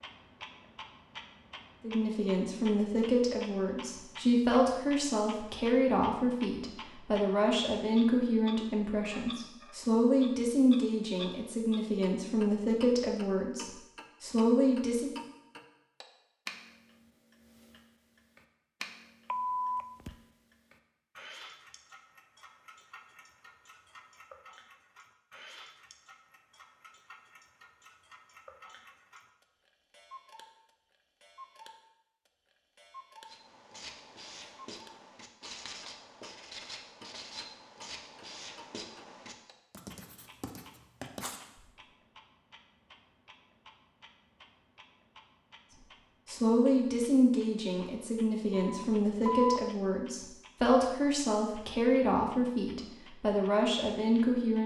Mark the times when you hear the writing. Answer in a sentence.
The writing can be heard from 33.2 to 41.8 s.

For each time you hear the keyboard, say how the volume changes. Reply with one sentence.
You can't hear the keyboard here.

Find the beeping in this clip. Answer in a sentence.
You can hear the beeping from 19.3 to 20.1 s and from 48.5 to 49.6 s.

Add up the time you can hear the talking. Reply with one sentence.
The talking can be heard for 22 seconds in total.